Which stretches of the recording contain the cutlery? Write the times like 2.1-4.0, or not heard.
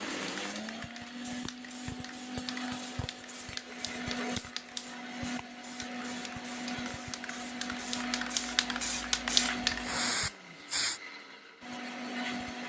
not heard.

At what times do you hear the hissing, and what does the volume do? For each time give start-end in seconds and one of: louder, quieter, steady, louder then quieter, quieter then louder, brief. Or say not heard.
0.1-11.0 louder.